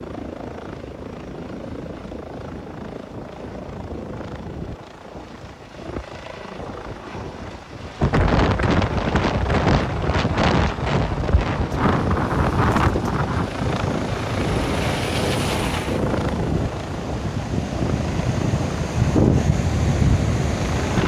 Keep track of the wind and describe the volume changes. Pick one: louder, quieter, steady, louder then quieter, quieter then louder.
quieter then louder.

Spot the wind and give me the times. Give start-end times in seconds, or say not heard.
8.0-21.0.